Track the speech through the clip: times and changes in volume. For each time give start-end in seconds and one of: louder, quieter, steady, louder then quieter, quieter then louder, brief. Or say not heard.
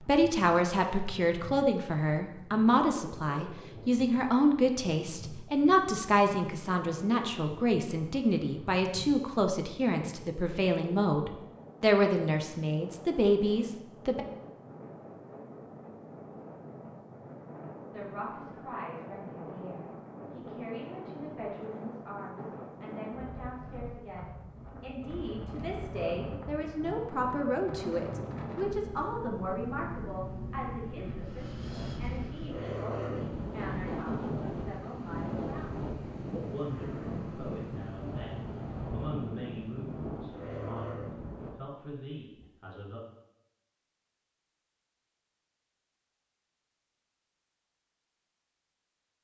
0.1-14.2 steady
17.9-43.0 louder then quieter.